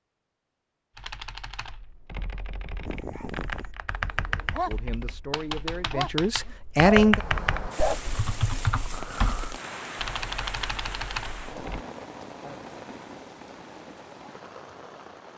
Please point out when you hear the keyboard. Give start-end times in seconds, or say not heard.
0.9-11.8.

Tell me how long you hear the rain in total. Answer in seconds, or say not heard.
8 s.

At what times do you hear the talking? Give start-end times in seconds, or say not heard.
4.7-7.2.